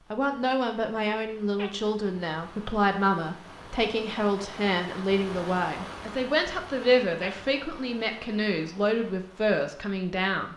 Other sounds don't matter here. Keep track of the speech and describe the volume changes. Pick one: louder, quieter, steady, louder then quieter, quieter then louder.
steady.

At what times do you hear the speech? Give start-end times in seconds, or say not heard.
0.1-10.5.